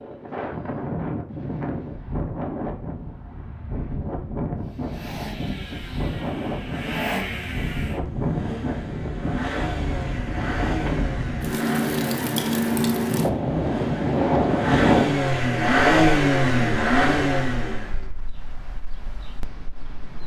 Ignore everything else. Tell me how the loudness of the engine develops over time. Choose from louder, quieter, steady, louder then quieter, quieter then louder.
louder.